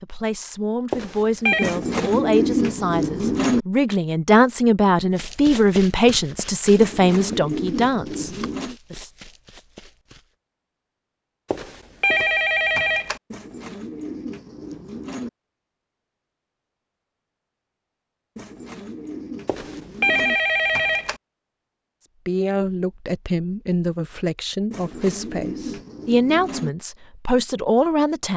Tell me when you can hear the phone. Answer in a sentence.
The phone can be heard from 0.9 to 1.8 s, from 11.5 to 13.2 s and from 19.4 to 21.1 s.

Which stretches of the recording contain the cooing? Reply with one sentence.
The cooing can be heard from 1.6 to 3.6 s, from 6.8 to 8.8 s, from 13.3 to 15.3 s, from 18.4 to 20.4 s and from 24.7 to 26.7 s.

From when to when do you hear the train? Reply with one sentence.
The train can't be heard in this clip.